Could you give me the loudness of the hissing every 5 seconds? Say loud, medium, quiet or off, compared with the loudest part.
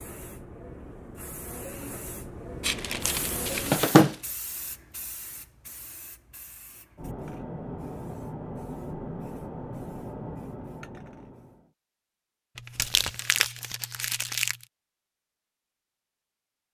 loud, loud, loud, off.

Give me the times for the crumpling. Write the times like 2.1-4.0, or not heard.
2.6-4.2, 12.6-14.6.